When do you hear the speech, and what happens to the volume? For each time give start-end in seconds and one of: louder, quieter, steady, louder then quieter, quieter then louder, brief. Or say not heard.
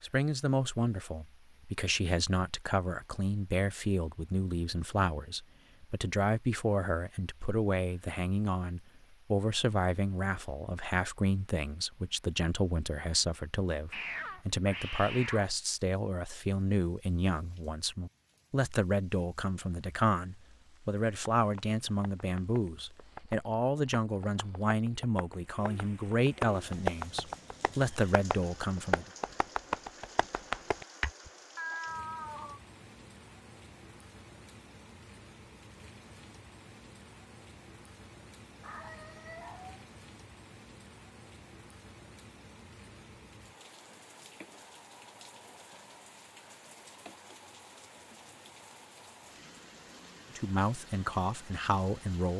0.0-29.1 steady
50.4-52.3 brief.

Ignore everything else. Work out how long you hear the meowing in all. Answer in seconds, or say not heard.
4 s.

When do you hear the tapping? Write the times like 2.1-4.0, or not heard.
21.2-31.1.